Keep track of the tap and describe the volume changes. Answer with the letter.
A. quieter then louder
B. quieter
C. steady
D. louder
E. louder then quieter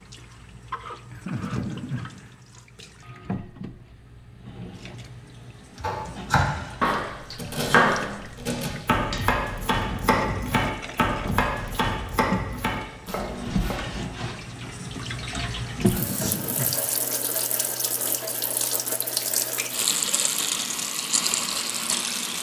D.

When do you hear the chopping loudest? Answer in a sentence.
The volume of the chopping peaks at 8 seconds.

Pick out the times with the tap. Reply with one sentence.
You can hear the tap from 0.0 to 22.3 s.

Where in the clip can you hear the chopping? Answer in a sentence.
The chopping can be heard from 5.8 to 14.0 s.